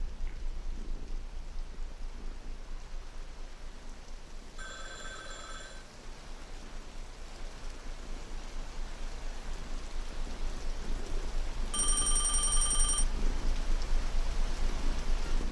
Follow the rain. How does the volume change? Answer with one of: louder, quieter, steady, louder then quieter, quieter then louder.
louder.